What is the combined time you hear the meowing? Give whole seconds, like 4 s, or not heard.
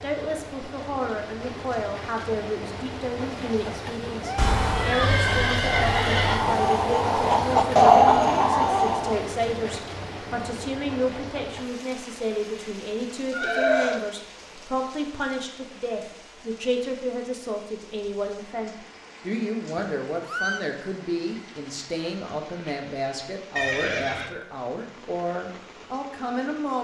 2 s.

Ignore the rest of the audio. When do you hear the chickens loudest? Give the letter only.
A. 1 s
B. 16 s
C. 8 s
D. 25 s
C.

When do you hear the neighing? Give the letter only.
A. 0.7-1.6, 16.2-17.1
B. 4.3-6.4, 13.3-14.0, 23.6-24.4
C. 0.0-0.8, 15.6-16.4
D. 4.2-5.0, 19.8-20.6
B.